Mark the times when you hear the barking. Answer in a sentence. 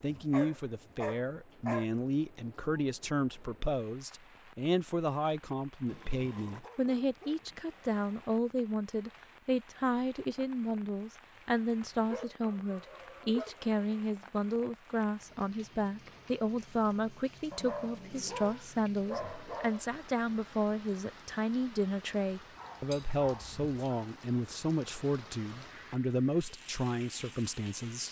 You can hear the barking from 0.1 to 1.9 s, from 5.8 to 8.3 s, from 12.1 to 14.0 s, from 17.5 to 19.9 s and from 22.6 to 24.1 s.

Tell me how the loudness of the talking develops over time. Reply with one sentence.
The volume of the talking stays about the same.